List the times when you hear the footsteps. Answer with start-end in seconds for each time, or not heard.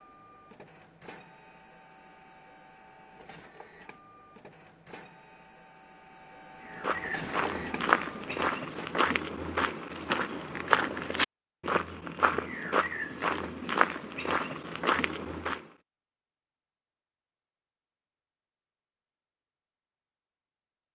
6.7-15.7.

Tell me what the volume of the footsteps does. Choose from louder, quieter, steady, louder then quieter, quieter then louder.
steady.